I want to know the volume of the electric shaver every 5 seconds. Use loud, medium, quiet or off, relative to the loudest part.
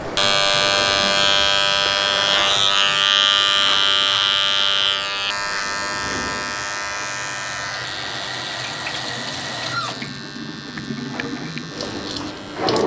loud, medium, quiet.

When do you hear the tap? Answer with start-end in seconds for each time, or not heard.
0.0-12.8.